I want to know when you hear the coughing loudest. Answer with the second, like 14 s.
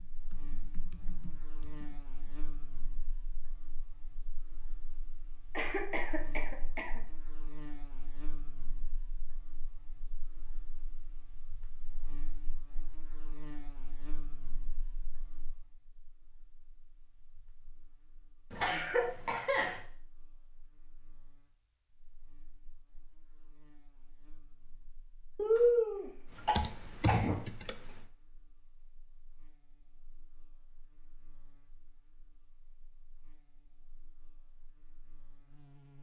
26 s.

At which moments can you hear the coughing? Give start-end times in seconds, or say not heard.
5.5-7.0, 18.5-19.8, 25.4-27.4.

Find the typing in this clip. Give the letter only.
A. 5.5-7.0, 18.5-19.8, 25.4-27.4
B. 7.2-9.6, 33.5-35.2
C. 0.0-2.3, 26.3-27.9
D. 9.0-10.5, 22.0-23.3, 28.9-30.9
C.